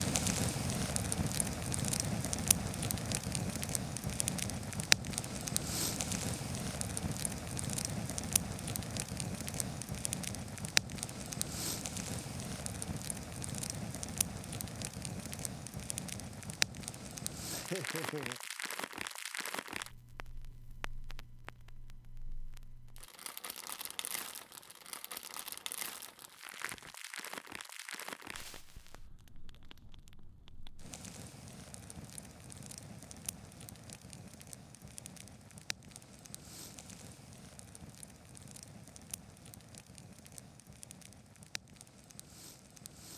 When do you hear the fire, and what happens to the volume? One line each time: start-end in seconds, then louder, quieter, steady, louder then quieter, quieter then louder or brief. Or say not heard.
0.0-43.1 quieter.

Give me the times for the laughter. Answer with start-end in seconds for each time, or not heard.
17.5-18.4.